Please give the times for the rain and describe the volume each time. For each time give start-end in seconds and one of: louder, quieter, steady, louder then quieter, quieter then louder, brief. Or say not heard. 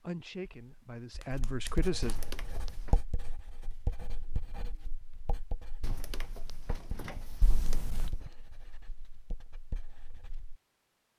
not heard.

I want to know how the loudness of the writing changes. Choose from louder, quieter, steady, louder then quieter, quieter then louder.
quieter.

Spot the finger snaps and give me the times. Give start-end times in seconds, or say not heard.
0.5-1.9, 7.4-8.1.